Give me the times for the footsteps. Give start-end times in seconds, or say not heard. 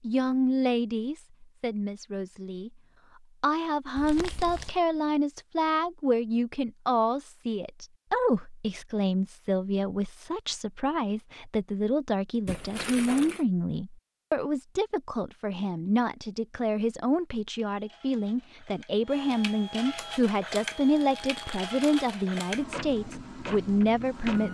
not heard.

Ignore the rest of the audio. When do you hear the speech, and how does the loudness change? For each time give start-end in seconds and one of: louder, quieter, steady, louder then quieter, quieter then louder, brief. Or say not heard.
0.0-2.7 brief
3.4-24.4 steady.